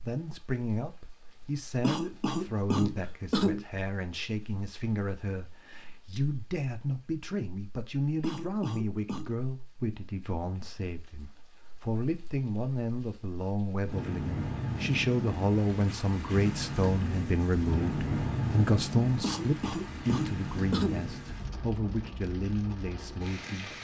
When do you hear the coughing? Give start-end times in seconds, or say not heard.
1.8-3.6, 8.2-9.3, 19.2-21.1.